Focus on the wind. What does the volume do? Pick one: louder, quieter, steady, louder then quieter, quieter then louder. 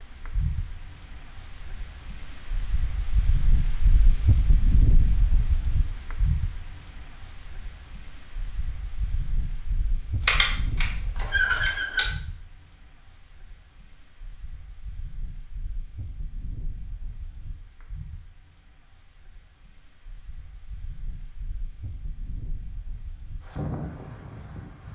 quieter then louder.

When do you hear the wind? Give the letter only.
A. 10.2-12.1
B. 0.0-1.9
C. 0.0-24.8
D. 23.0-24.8
C.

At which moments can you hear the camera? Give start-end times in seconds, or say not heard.
10.2-12.1.